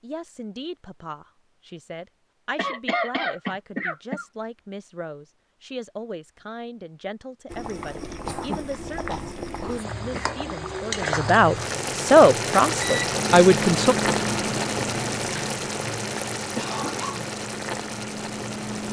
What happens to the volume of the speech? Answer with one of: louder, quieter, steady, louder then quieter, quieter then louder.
louder.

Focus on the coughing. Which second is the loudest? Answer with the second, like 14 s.
3 s.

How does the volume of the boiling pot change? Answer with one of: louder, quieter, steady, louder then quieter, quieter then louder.
louder then quieter.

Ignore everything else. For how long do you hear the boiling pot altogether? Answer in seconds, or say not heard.
11 s.